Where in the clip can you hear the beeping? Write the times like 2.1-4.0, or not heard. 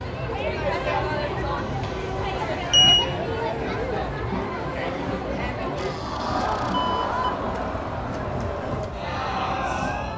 1.6-3.0, 5.8-7.3.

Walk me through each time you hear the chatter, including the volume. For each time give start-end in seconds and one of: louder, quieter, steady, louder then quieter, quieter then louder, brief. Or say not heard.
0.0-10.1 steady.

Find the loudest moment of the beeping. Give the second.
3 s.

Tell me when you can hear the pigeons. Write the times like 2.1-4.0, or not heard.
not heard.